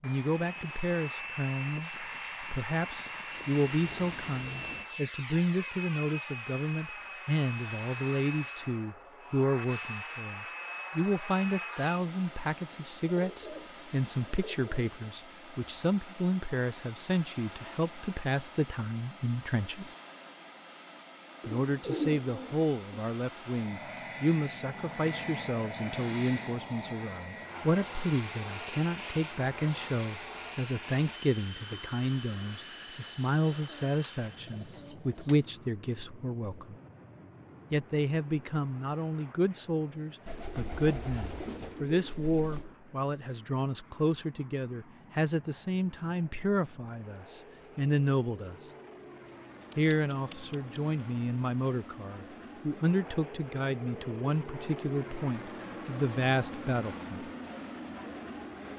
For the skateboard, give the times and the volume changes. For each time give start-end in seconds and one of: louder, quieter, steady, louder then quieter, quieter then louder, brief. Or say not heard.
not heard.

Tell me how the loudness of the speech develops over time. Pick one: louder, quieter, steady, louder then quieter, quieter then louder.
steady.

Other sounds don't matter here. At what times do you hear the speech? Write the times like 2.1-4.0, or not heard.
0.0-19.9, 21.4-36.8, 37.7-48.7, 49.8-57.2.